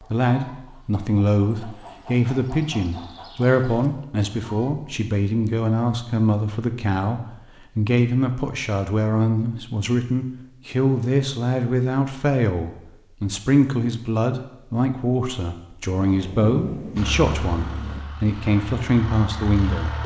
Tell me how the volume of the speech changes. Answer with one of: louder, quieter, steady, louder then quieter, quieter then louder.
steady.